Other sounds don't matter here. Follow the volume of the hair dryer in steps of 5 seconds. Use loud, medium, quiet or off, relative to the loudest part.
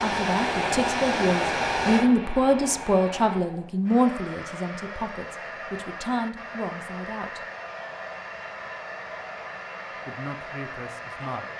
loud, medium, medium.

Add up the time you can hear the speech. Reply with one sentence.
The speech can be heard for 9 seconds in total.